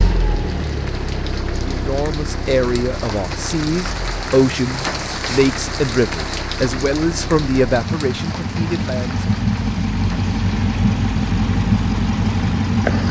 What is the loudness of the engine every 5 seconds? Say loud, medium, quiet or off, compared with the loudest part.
medium, medium, loud.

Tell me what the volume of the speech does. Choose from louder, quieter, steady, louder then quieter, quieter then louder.
steady.